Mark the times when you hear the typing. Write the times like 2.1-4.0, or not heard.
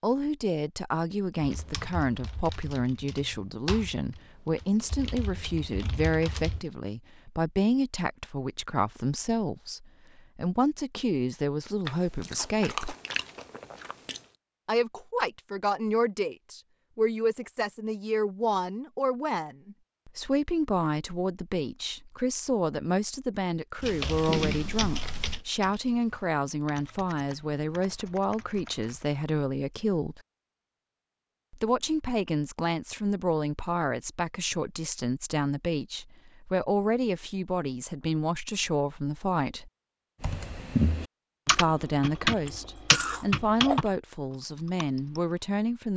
1.4-6.7, 23.8-29.1, 40.2-45.4.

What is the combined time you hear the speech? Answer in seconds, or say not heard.
41 s.